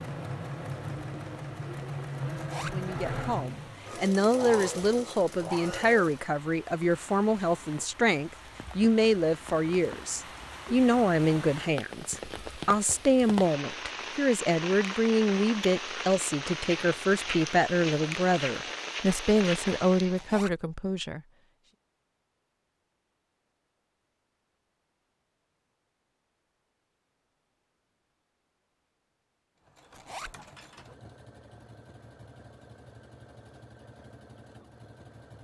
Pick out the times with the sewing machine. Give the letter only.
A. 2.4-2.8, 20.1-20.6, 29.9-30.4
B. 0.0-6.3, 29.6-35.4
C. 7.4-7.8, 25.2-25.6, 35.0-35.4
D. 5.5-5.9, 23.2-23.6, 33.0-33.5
B.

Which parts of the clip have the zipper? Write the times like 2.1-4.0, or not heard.
2.4-2.8, 20.1-20.6, 29.9-30.4.